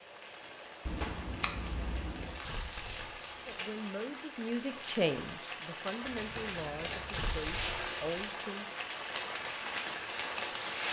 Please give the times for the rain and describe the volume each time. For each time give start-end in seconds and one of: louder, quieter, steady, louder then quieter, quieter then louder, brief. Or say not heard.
0.0-10.8 louder.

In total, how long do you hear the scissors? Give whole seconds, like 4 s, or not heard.
3 s.